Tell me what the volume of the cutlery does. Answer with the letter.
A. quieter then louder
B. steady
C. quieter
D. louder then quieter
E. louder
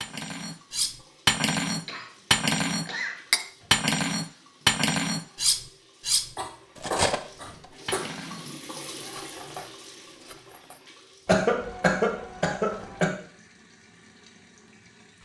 C.